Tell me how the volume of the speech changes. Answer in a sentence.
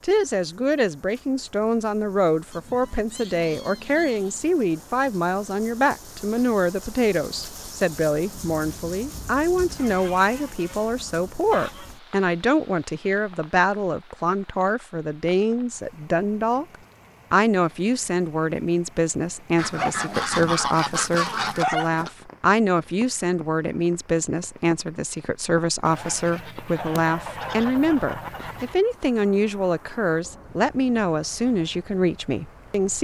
The volume of the speech stays about the same.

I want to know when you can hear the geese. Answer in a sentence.
You can hear the geese from 2.5 to 4.5 s, from 9.8 to 11.9 s, from 19.6 to 22.1 s and from 25.9 to 28.8 s.